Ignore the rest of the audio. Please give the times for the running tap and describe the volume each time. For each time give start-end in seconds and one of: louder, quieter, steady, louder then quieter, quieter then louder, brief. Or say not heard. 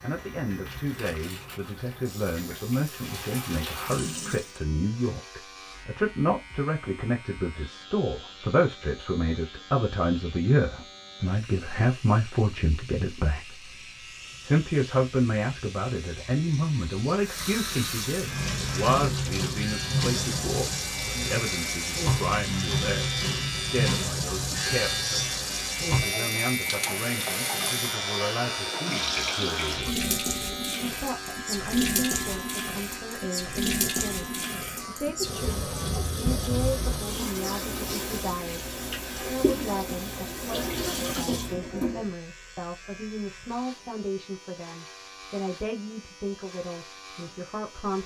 0.0-4.6 louder
17.2-42.1 steady.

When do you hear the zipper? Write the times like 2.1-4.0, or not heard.
not heard.